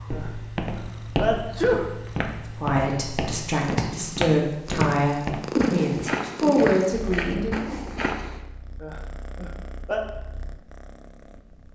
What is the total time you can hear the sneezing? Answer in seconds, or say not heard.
3 s.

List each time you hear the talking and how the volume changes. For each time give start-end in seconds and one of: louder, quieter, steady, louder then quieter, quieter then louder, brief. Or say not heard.
2.5-7.6 louder.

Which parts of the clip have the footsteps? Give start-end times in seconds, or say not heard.
0.1-8.4.